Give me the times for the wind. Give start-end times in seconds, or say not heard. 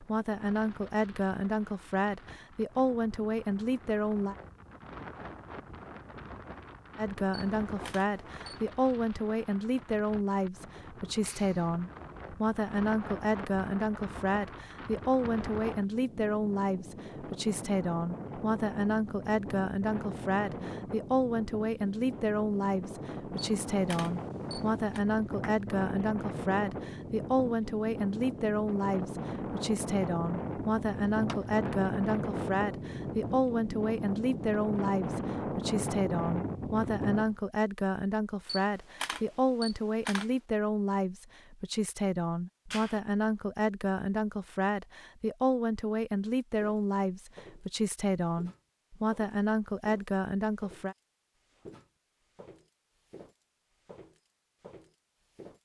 0.0-37.4.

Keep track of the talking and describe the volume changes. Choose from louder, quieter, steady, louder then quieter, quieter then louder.
steady.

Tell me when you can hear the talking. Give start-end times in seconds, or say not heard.
0.0-4.3, 7.0-51.0.